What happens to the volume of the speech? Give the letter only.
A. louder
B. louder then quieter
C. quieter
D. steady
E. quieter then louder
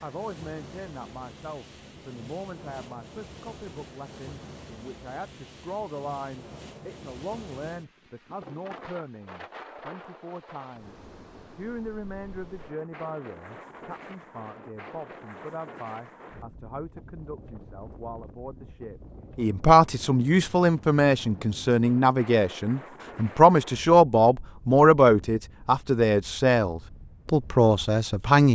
A.